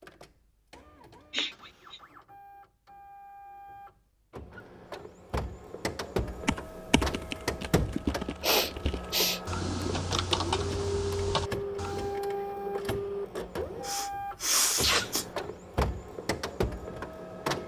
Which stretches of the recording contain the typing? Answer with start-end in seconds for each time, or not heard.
6.3-12.2.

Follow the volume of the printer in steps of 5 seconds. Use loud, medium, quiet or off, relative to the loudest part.
quiet, loud, loud, loud.